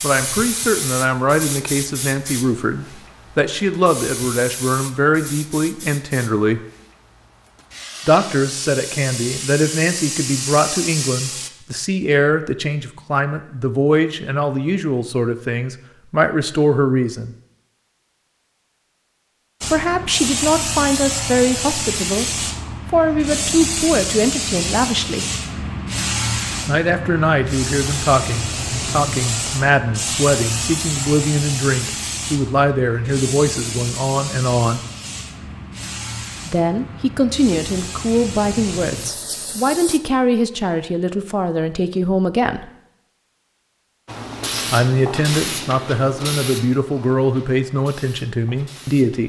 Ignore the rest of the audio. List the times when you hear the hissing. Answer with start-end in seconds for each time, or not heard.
0.0-11.5, 19.6-40.0, 44.0-49.2.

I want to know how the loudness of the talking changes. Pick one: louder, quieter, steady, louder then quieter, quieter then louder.
steady.